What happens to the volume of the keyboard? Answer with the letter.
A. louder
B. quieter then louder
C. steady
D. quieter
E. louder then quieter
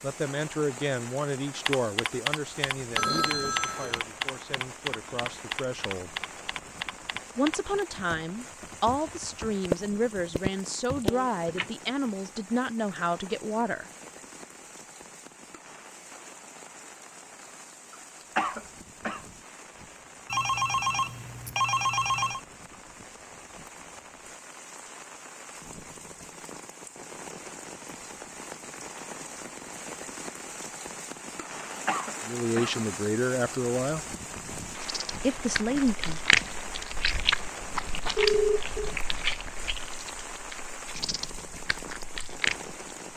B.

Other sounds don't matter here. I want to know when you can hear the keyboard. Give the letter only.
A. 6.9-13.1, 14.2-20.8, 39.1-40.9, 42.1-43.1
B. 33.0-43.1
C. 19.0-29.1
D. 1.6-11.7
D.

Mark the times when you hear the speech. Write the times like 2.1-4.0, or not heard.
0.0-6.2, 7.3-13.8, 32.2-34.0, 35.2-36.2.